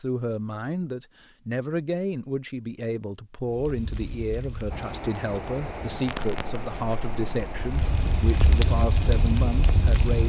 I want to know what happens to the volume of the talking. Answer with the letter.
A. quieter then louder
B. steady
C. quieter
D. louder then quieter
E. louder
B.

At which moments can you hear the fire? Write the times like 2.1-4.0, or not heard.
3.5-10.2.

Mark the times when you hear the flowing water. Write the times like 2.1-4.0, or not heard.
4.7-10.2.